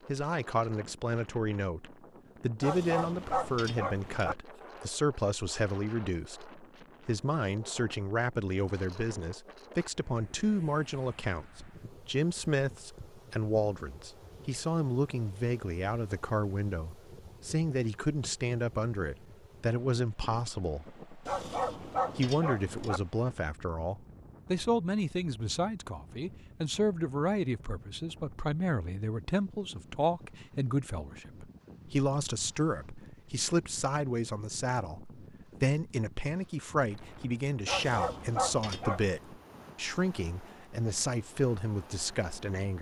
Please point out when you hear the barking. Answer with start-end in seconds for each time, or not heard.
2.6-4.3, 21.2-23.0, 37.6-39.1.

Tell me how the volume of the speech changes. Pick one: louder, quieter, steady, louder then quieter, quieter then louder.
steady.